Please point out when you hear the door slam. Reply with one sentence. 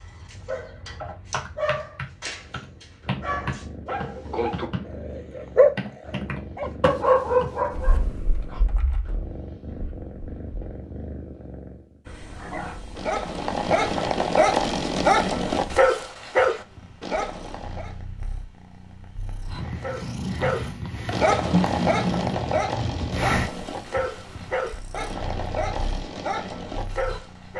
The door slam can't be heard in this clip.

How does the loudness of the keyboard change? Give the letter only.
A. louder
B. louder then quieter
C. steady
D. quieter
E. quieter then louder
D.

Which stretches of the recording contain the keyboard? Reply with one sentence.
You can hear the keyboard from 1.0 to 10.8 s.